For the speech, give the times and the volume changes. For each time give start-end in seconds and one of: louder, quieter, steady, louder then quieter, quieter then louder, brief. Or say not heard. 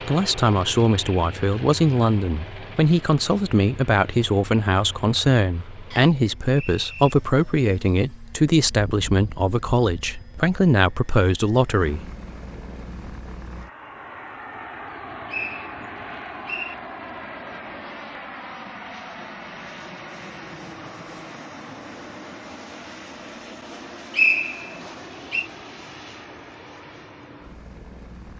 0.1-12.0 steady.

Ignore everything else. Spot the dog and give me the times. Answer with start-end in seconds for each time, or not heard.
not heard.